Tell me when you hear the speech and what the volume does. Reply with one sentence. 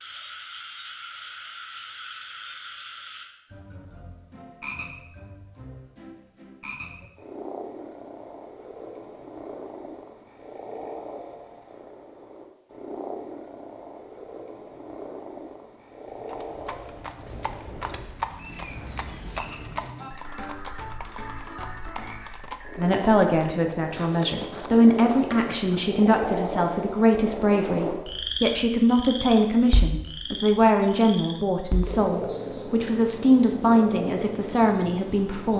The speech can be heard from 22.8 to 35.5 s, at a steady volume.